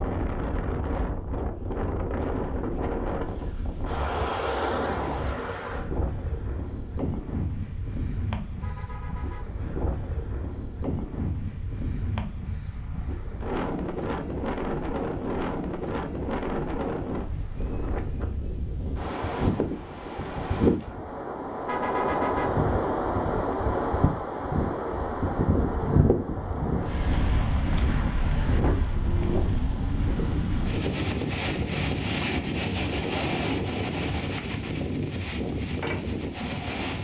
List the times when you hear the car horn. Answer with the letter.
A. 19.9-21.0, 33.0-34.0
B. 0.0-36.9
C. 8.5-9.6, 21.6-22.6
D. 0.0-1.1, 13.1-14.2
C.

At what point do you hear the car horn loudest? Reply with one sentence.
The volume of the car horn peaks at 22 seconds.